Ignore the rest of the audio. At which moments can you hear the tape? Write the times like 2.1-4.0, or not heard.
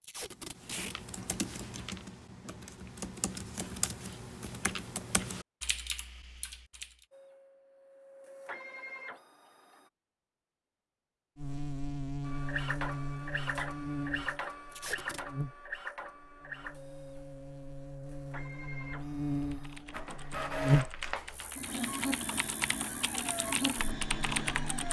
0.0-0.9, 14.7-15.2.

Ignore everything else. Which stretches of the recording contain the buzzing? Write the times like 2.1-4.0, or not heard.
11.3-24.8.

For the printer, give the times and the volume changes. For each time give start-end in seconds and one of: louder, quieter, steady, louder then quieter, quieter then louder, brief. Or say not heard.
7.1-9.9 brief
12.2-24.8 quieter then louder.